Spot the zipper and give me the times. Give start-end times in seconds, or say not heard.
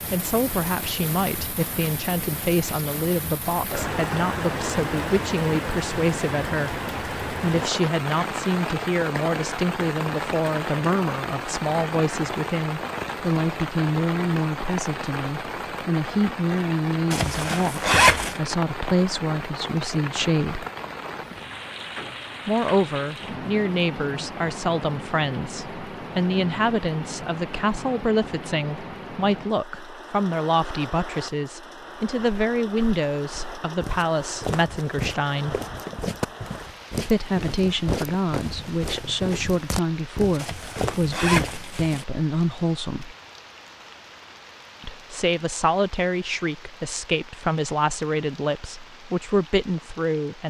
17.1-18.4, 40.4-42.0.